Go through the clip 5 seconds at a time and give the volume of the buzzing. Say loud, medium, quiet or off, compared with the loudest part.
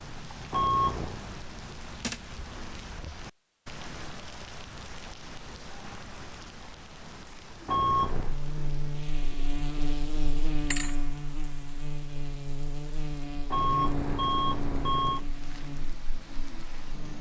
off, loud, loud, medium.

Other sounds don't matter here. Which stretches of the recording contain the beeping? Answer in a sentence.
You can hear the beeping from 0.5 to 1.2 s, from 7.7 to 8.3 s and from 13.5 to 15.2 s.